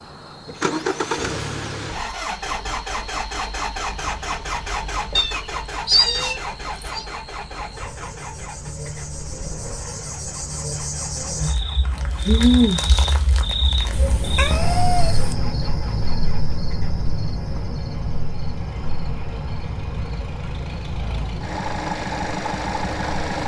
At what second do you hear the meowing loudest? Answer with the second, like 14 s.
6 s.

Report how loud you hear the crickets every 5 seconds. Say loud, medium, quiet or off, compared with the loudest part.
quiet, quiet, loud, medium, quiet.